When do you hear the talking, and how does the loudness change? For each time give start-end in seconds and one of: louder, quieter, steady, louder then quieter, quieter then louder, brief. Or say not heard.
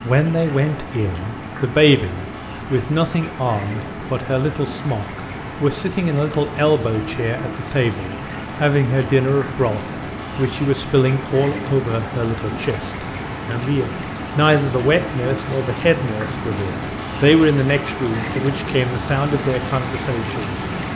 0.0-20.6 steady.